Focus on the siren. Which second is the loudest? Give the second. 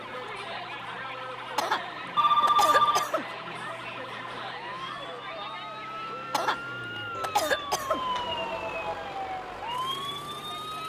8 s.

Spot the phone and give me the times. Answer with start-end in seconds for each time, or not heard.
2.1-3.1, 7.2-9.1.